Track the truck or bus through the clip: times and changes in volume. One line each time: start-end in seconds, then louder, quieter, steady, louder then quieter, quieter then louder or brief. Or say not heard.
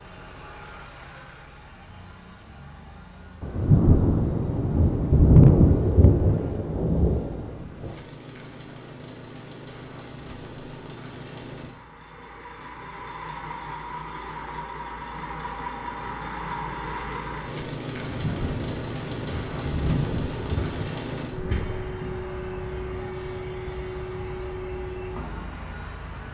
0.0-26.3 louder.